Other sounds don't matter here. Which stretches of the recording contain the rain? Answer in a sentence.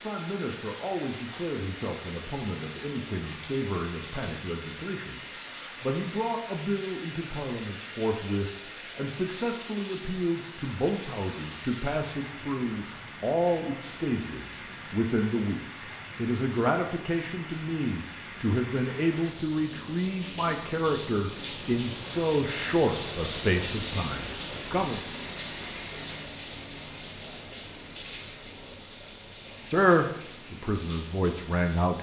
The rain can be heard from 0.0 to 31.9 s.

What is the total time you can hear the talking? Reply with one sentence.
You can hear the talking for 27 seconds altogether.